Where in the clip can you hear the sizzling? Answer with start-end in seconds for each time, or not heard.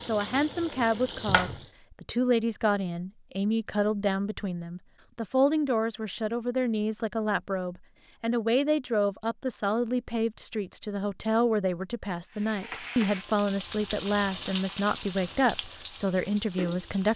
0.0-1.7, 12.3-17.1.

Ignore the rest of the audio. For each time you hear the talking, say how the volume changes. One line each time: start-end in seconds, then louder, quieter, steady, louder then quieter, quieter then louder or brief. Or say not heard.
0.0-17.1 steady.